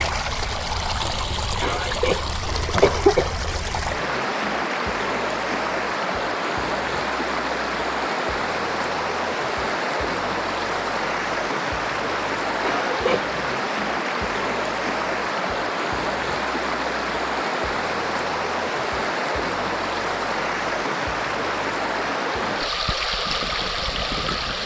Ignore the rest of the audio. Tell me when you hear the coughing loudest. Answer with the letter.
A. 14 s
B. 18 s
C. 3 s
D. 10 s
C.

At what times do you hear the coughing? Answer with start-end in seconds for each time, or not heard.
1.6-3.4, 12.6-13.3.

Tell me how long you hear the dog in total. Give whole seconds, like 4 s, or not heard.
not heard.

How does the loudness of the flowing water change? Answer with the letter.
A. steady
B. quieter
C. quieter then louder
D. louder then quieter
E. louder
A.